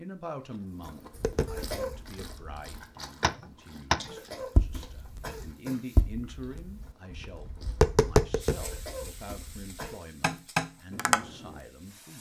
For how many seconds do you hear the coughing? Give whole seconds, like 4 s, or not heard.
4 s.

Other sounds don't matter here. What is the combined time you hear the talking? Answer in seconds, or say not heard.
12 s.